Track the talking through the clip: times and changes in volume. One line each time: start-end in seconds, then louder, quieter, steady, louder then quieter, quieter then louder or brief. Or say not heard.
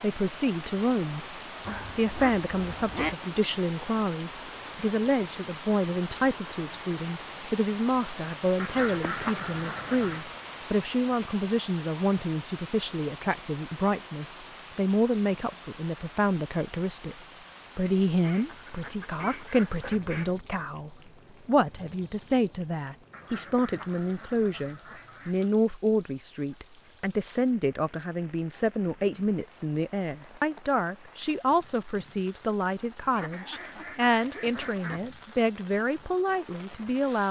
0.0-1.4 brief
1.9-37.2 steady.